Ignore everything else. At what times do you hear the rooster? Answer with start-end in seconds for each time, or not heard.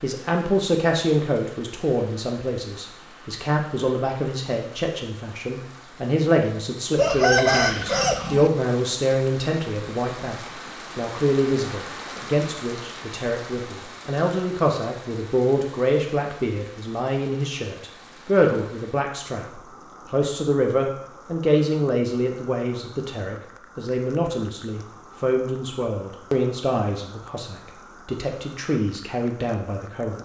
7.0-8.5.